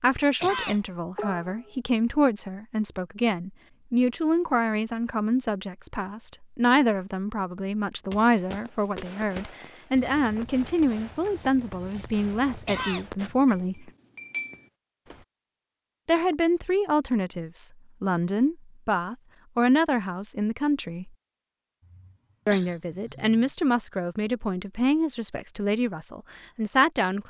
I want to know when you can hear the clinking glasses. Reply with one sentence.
You can hear the clinking glasses from 13.2 to 14.7 s.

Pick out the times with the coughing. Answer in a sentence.
The coughing can be heard from 0.4 to 1.8 s, from 12.7 to 13.1 s and from 21.9 to 23.5 s.